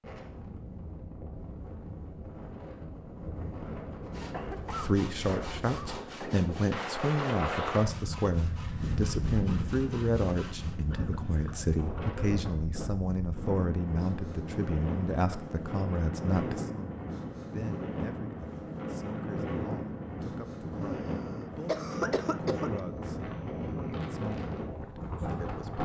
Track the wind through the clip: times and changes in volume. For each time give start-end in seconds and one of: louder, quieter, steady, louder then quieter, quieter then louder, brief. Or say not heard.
0.0-25.8 louder.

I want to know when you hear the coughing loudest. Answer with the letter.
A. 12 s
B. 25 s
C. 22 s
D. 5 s
C.